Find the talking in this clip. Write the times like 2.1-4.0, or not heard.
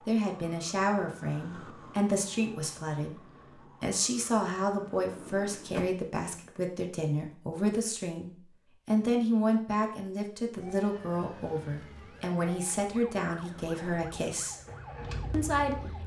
0.1-3.2, 3.8-14.6, 15.3-16.0.